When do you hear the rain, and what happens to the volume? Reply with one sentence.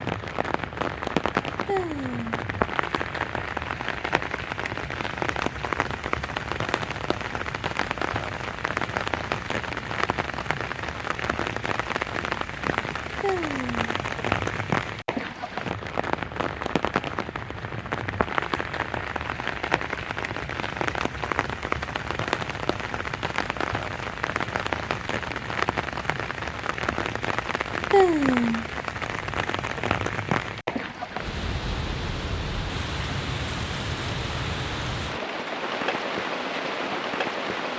You can hear the rain from 0.0 to 37.7 s, at a steady volume.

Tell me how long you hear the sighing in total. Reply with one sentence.
The sighing can be heard for 2 seconds in total.